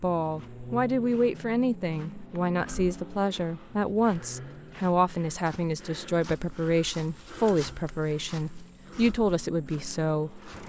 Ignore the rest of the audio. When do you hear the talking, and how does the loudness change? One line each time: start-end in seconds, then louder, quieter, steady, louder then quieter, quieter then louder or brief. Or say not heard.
0.0-10.4 steady.